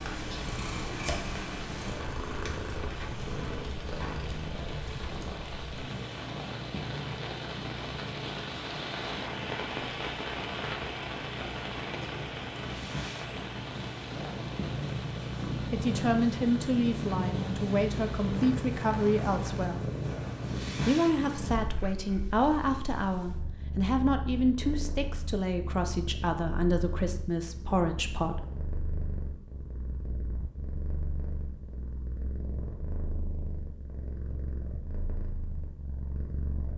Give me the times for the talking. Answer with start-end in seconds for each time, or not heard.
15.7-19.9, 20.8-28.6.